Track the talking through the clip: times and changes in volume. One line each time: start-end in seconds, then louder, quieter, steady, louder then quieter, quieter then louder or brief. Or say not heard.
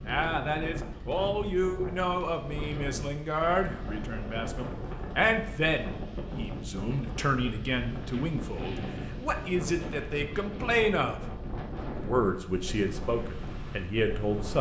0.0-11.2 steady
12.0-14.5 brief.